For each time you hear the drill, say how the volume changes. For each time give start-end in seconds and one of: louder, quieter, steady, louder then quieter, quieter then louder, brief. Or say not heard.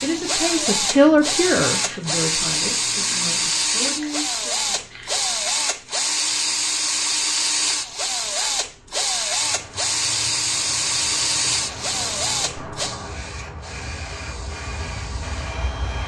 0.0-16.0 quieter.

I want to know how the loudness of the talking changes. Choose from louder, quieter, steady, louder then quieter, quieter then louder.
quieter then louder.